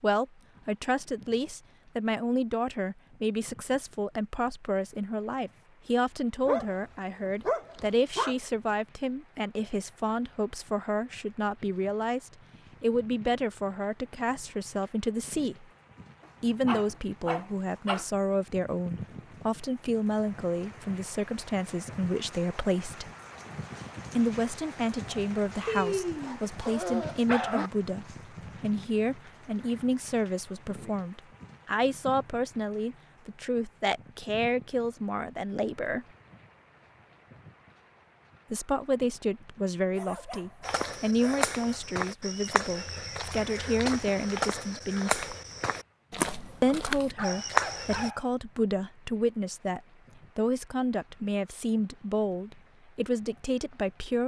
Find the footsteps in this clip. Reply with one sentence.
You can hear the footsteps from 40.6 to 48.1 s.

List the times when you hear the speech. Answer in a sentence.
The speech can be heard from 0.0 to 15.7 s, from 16.4 to 23.1 s, from 24.1 to 36.0 s, from 38.5 to 45.2 s and from 46.6 to 54.2 s.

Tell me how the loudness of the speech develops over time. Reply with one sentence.
The loudness of the speech stays about the same.